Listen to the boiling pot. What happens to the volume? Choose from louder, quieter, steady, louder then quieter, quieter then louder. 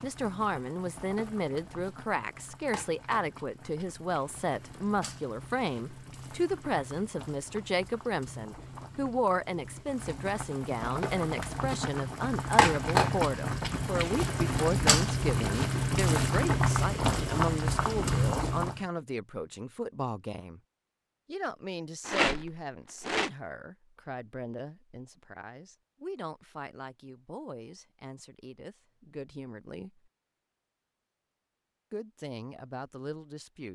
louder.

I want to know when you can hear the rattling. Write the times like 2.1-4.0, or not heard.
22.1-23.3.